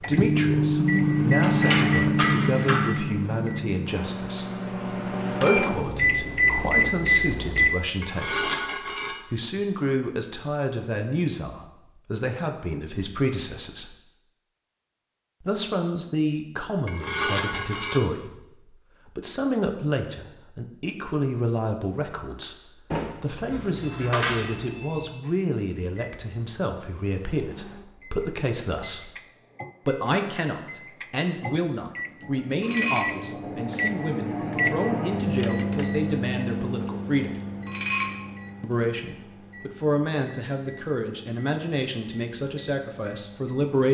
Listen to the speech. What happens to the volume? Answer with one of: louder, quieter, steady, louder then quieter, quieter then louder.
steady.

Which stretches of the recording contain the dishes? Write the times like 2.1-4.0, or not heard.
1.4-3.0, 8.0-9.2, 16.9-18.0, 22.9-24.6, 32.6-33.1, 37.6-38.1.